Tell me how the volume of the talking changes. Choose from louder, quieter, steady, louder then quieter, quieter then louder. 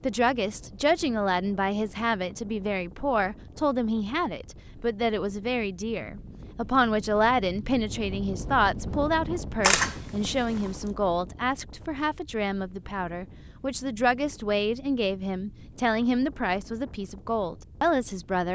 steady.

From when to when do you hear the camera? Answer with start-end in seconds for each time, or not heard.
9.6-10.8.